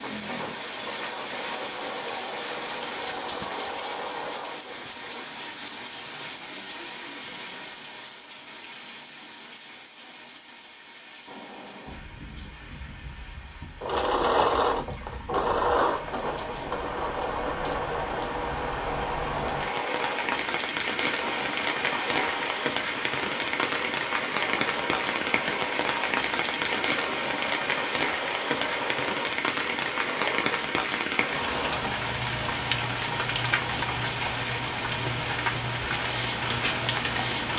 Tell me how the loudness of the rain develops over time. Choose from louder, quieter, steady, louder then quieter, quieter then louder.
quieter then louder.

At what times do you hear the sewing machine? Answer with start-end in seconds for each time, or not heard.
0.0-5.2, 13.8-37.5.